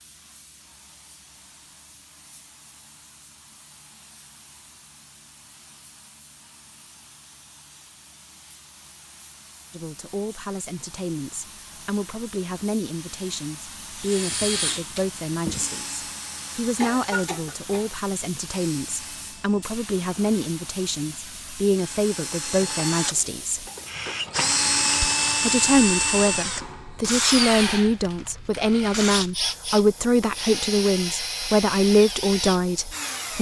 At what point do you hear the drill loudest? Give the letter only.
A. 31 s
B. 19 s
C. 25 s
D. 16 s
C.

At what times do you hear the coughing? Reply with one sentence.
You can hear the coughing from 16.8 to 17.9 s.